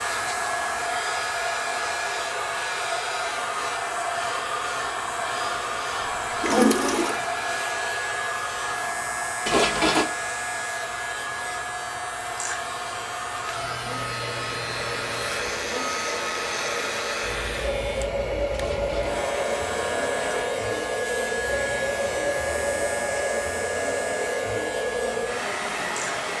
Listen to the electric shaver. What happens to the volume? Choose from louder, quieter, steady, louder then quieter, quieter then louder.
steady.